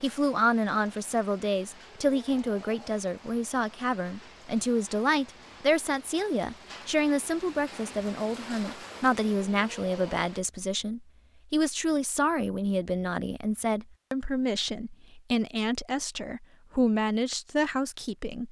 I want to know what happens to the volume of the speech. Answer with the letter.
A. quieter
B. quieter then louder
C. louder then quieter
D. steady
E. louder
D.